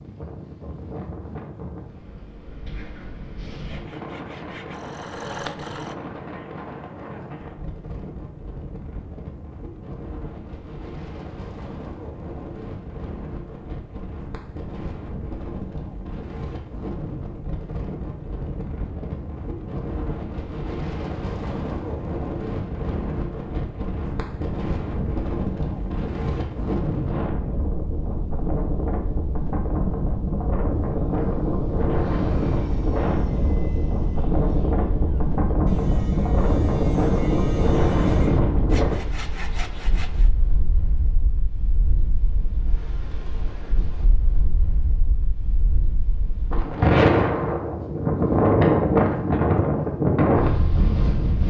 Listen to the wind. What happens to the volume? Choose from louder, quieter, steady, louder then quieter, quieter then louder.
louder.